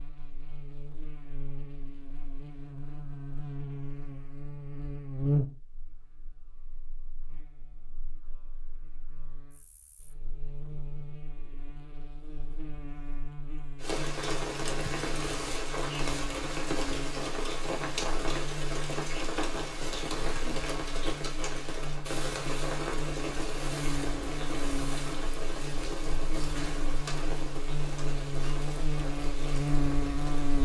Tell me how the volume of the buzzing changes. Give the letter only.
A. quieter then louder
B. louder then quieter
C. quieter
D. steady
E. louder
A.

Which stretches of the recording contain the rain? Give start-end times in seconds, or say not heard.
13.8-30.5.